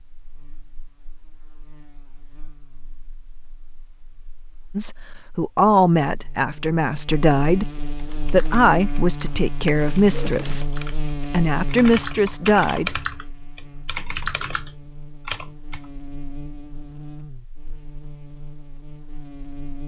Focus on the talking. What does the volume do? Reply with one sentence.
The loudness of the talking stays about the same.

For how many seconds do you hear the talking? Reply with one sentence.
The talking can be heard for 8 seconds in total.